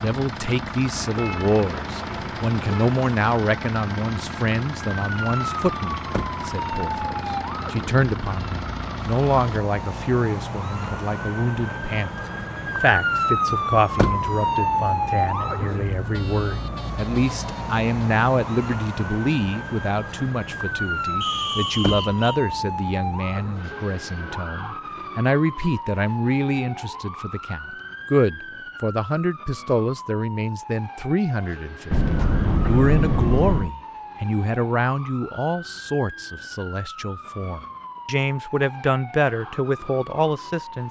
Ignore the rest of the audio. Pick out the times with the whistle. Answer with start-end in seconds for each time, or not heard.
21.2-22.4.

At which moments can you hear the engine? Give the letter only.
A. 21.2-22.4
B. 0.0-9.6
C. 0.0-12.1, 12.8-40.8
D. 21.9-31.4
B.